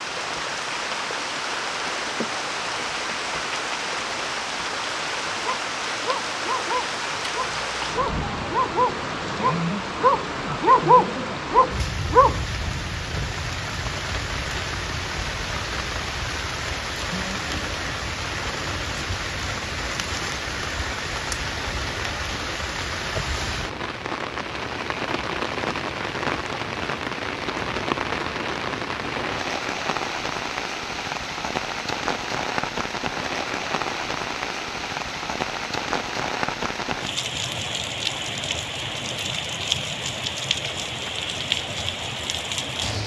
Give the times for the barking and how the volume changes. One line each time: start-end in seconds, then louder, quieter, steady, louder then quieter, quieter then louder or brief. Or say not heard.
5.4-12.4 louder.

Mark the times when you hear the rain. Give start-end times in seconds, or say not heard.
0.0-43.0.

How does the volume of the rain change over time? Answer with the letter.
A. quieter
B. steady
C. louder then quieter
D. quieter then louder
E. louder
B.